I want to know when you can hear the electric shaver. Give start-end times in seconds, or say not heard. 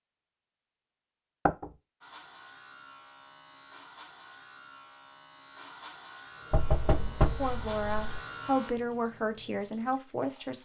2.0-8.7.